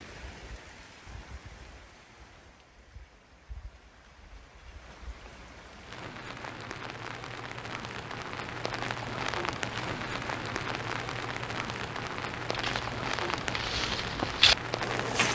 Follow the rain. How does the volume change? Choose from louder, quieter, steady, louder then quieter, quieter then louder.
louder.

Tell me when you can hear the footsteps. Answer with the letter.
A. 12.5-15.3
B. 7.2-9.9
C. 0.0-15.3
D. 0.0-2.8
A.